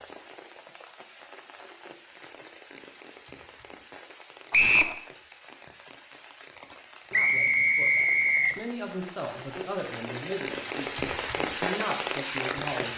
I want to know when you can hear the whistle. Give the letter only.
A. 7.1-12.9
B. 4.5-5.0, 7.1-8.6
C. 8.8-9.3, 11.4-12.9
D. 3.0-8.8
B.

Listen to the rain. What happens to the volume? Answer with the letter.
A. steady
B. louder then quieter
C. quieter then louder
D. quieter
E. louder
E.